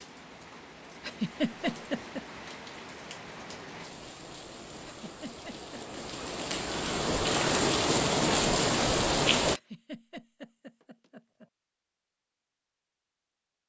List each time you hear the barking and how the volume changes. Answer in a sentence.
The barking can't be heard in this clip.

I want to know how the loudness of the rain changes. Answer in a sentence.
The volume of the rain goes up.